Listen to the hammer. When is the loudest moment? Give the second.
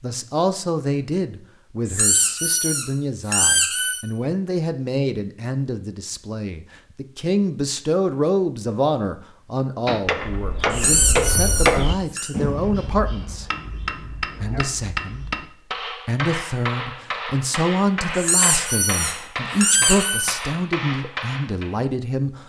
12 s.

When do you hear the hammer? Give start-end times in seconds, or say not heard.
9.8-21.8.